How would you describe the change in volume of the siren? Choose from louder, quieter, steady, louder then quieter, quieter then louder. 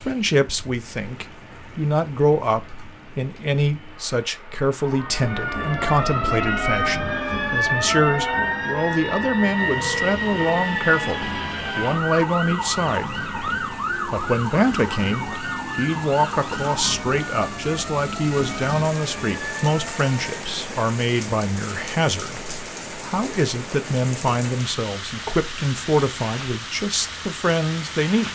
quieter.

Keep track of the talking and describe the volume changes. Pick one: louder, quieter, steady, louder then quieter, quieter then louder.
steady.